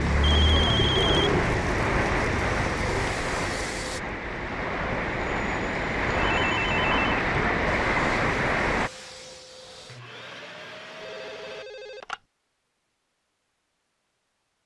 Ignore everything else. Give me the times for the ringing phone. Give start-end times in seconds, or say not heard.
0.2-1.4, 6.3-7.0, 11.0-12.2.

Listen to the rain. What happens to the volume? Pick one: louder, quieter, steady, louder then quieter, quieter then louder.
quieter then louder.